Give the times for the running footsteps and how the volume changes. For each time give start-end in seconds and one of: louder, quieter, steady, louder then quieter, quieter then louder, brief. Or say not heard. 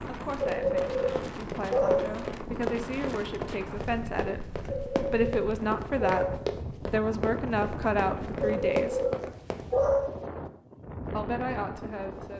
0.5-9.7 steady.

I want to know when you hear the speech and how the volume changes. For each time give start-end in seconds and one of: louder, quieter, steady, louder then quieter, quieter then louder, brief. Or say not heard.
0.1-9.0 louder
11.1-12.3 brief.